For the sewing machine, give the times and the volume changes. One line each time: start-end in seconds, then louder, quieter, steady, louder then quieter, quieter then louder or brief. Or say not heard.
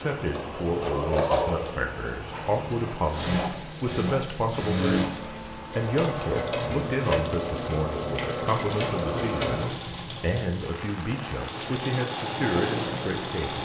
0.2-13.6 steady.